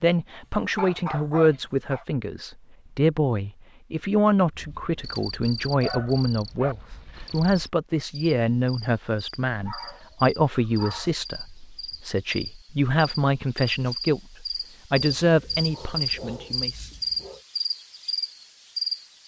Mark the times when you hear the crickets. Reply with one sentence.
The crickets can be heard from 4.5 to 19.2 s.